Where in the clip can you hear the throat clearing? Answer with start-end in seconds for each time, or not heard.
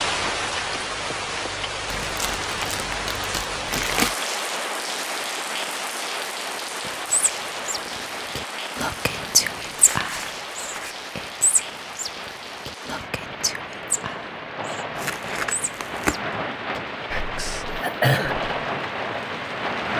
17.8-18.4.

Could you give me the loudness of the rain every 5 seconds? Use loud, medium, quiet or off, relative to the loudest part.
loud, loud, medium, loud.